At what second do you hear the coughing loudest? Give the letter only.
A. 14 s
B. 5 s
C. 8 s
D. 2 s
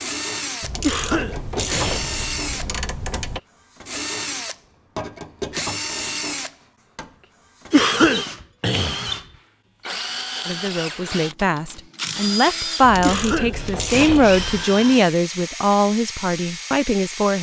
C.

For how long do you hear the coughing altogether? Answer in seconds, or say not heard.
4 s.